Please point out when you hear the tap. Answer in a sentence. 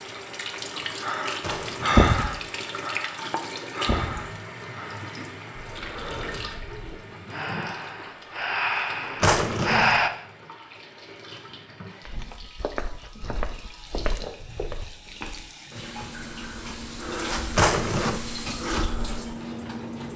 You can hear the tap from 0.0 to 20.1 s.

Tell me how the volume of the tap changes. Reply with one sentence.
The volume of the tap goes down, then up.